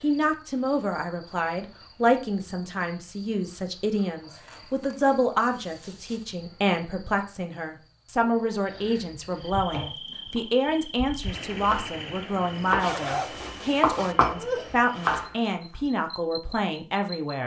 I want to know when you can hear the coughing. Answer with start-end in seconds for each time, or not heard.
14.3-14.8.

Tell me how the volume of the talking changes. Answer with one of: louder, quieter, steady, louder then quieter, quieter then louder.
steady.